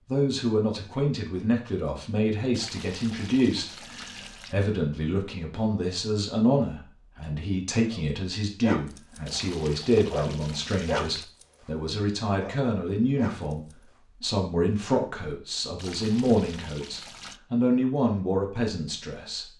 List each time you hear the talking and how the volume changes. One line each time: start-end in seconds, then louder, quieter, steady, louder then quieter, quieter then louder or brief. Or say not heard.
0.1-19.5 steady.